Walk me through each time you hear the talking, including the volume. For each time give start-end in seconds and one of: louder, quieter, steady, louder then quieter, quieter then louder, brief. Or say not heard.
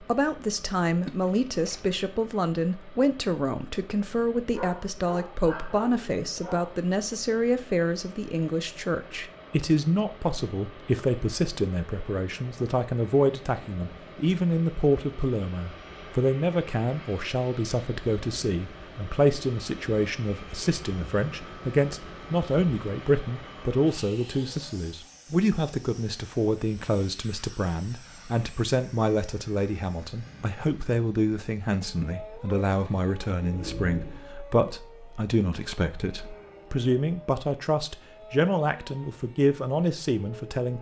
0.0-40.7 steady.